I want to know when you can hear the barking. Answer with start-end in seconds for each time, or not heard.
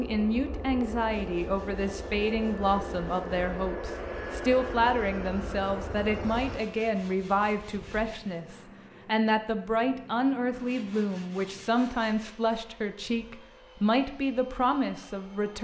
not heard.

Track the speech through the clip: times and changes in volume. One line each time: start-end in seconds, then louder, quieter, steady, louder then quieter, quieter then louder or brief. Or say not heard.
0.0-15.5 steady.